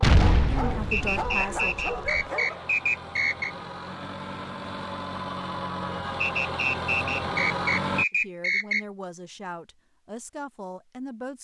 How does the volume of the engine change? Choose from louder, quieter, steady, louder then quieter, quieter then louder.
louder.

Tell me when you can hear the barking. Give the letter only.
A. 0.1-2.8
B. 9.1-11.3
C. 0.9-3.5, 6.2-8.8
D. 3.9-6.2
A.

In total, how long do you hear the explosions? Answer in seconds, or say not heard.
2 s.